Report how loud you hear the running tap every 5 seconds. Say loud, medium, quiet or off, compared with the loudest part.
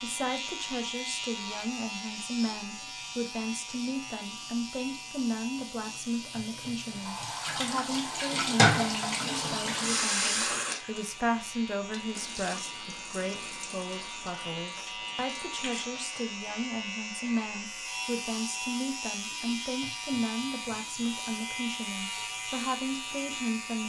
quiet, loud, medium, quiet, quiet.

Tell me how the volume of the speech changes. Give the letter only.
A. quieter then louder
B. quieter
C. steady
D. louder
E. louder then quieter
C.